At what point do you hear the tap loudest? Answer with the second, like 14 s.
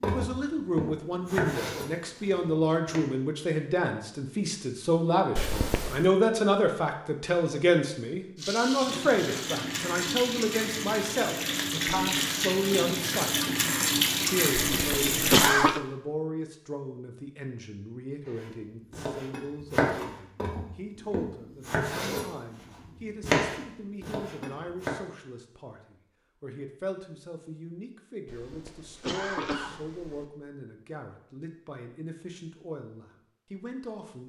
14 s.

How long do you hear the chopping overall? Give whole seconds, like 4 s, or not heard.
10 s.